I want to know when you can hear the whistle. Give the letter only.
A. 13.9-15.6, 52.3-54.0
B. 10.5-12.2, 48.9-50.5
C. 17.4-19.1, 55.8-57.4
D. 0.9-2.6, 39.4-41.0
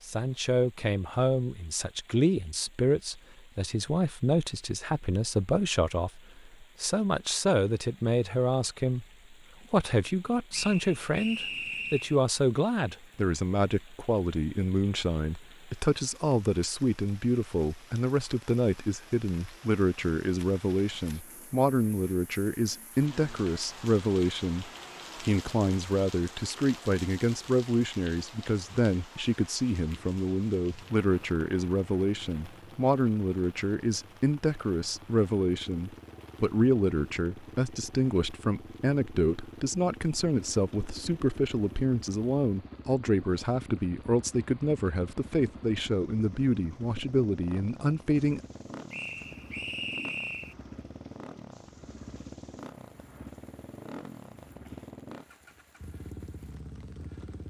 B.